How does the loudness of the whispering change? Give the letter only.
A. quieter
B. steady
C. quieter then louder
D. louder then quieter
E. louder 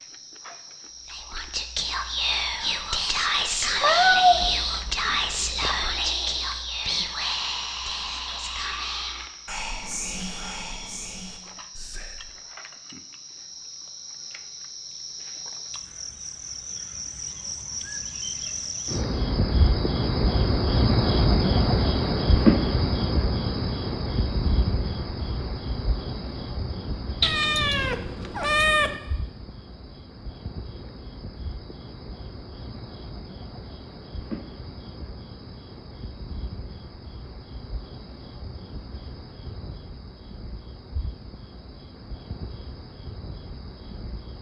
A.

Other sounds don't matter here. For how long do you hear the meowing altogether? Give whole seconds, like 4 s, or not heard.
4 s.